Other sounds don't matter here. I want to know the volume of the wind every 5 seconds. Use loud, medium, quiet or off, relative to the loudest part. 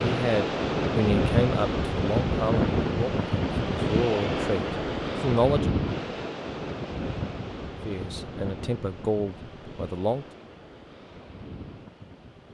loud, medium, quiet.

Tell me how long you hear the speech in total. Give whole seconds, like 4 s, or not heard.
8 s.